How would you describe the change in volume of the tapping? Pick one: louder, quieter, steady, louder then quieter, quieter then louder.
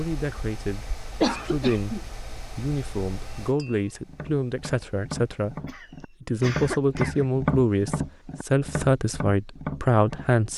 louder then quieter.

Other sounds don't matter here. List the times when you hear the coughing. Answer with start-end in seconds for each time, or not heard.
1.2-2.0, 5.7-7.4.